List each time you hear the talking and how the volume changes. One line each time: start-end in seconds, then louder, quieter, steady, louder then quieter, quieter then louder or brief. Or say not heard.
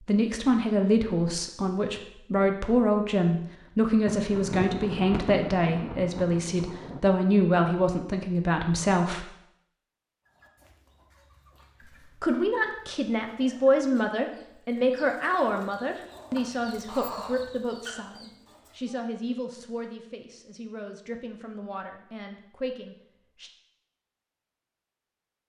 0.1-9.2 steady
11.8-23.5 quieter.